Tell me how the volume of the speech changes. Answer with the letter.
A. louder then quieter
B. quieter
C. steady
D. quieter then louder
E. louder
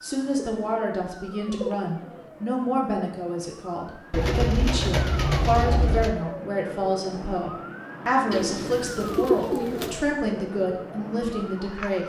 C.